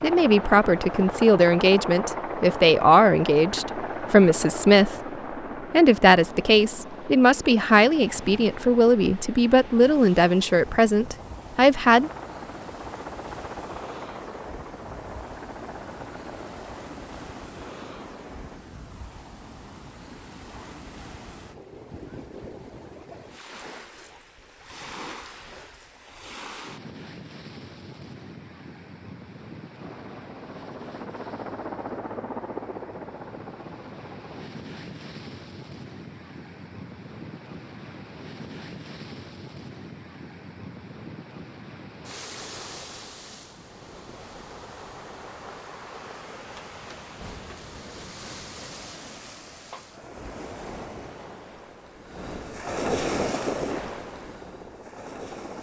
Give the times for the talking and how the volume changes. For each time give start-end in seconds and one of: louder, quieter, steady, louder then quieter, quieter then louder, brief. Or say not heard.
0.0-5.0 steady
5.7-12.1 steady.